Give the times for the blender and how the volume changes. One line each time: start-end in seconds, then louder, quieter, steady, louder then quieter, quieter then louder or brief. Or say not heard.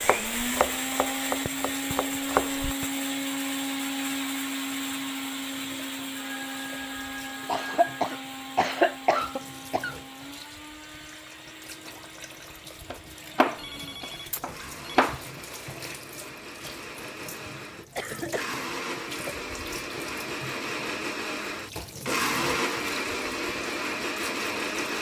0.0-24.9 quieter then louder.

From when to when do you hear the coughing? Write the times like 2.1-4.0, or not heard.
7.5-9.9, 17.9-18.6.